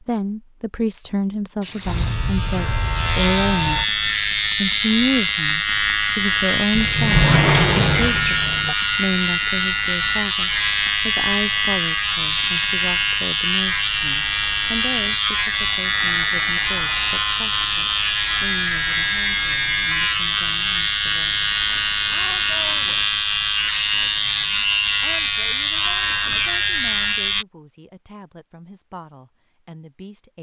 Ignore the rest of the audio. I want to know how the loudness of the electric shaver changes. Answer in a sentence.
The volume of the electric shaver stays about the same.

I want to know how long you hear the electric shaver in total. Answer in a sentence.
The electric shaver can be heard for 26 seconds in total.